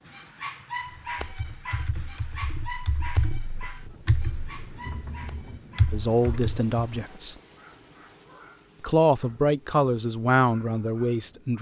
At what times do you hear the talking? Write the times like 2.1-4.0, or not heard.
5.9-7.3, 8.8-11.5.